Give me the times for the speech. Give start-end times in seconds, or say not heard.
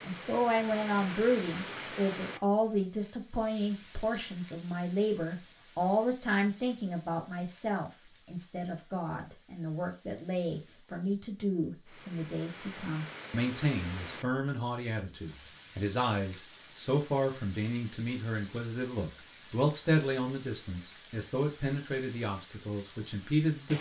0.0-23.7.